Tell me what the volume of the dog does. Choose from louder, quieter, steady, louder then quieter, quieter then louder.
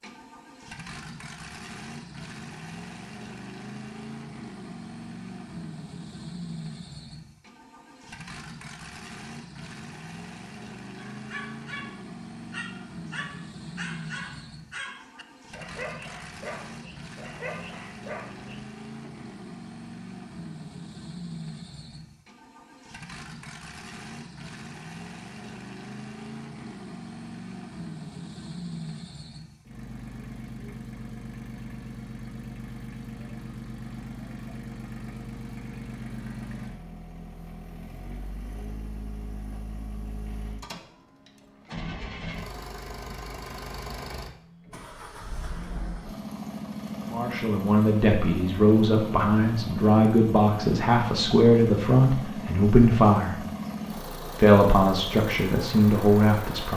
steady.